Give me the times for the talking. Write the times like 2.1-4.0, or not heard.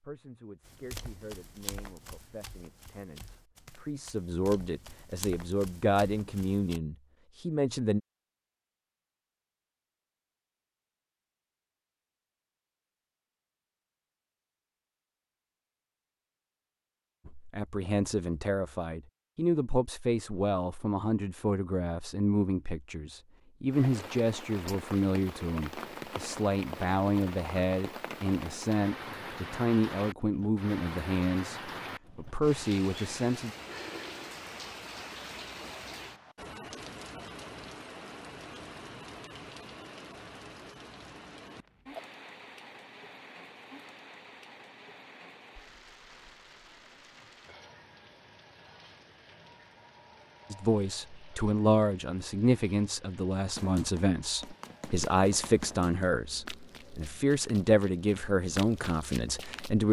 0.0-8.0, 17.2-33.5, 50.5-59.8.